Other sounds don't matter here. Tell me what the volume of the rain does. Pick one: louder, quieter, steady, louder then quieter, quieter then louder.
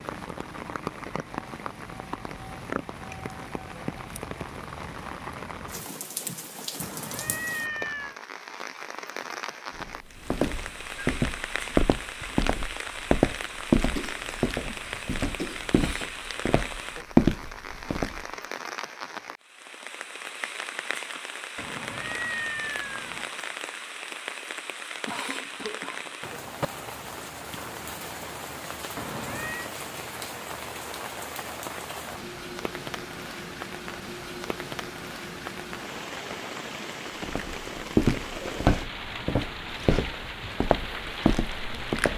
steady.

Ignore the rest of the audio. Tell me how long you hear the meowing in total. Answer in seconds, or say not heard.
4 s.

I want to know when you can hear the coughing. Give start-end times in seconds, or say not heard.
13.9-15.7, 25.1-26.3.